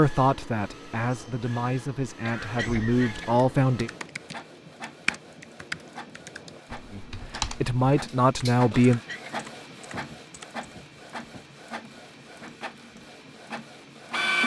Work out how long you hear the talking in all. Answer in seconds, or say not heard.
6 s.